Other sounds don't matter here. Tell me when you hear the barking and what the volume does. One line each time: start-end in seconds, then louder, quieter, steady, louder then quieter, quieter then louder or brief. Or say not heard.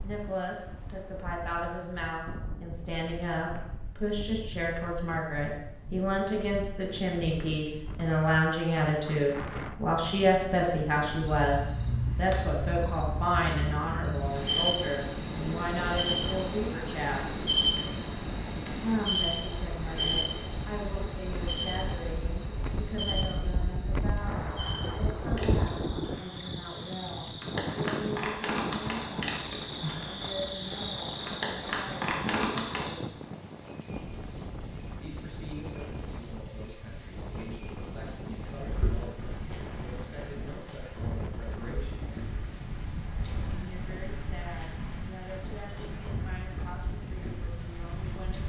not heard.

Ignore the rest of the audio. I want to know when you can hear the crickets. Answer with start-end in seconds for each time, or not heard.
11.2-48.4.